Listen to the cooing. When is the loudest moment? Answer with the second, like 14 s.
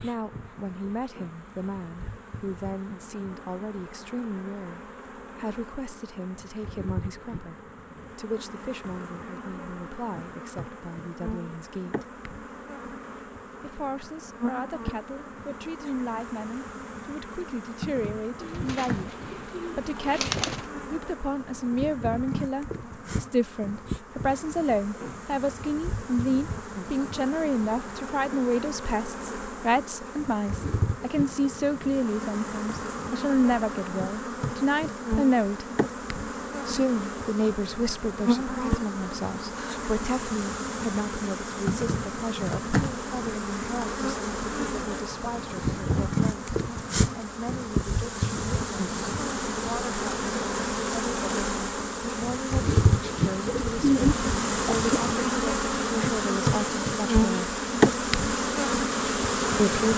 54 s.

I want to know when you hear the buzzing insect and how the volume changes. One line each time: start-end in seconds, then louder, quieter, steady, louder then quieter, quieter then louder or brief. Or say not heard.
0.0-59.9 louder.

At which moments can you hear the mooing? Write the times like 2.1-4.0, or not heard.
not heard.